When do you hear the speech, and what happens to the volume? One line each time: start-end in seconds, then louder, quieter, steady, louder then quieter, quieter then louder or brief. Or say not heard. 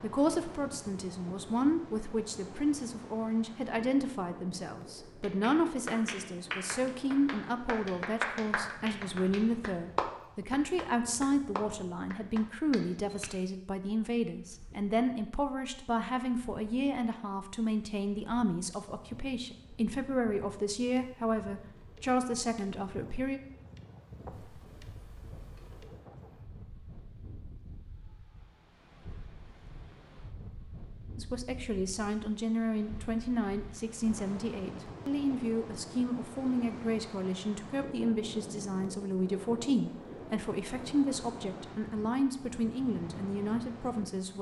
0.0-23.4 steady
31.1-44.3 steady.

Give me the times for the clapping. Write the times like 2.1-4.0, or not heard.
5.2-13.4.